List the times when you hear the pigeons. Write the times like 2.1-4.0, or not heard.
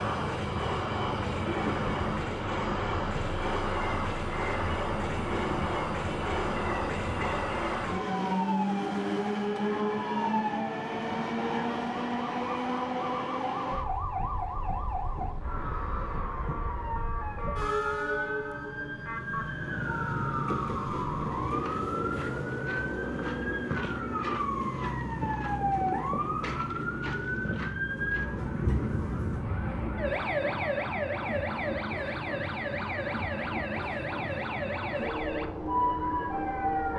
not heard.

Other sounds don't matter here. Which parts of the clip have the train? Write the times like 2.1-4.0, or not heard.
0.0-36.9.